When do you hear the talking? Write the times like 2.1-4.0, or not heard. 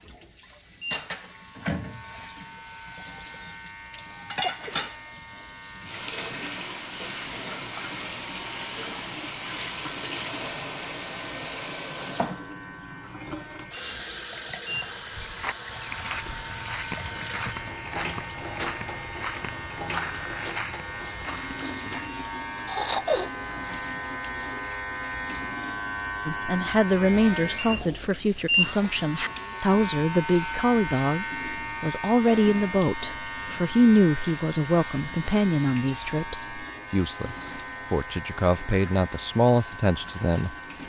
26.2-40.8.